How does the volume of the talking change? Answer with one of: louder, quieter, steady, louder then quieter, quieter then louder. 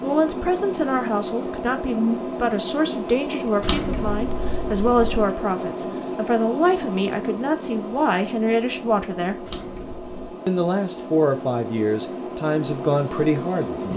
steady.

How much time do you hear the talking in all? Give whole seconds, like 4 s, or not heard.
13 s.